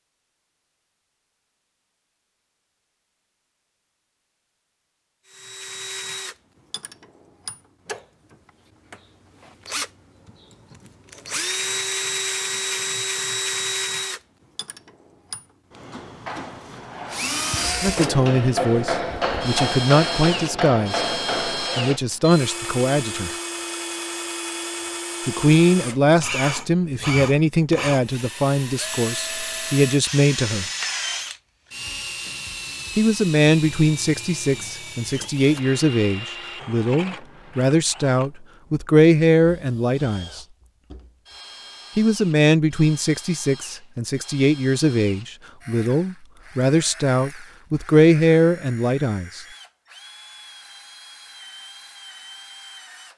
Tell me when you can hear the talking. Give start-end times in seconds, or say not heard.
17.8-23.3, 25.2-30.6, 33.0-40.5, 42.0-49.5.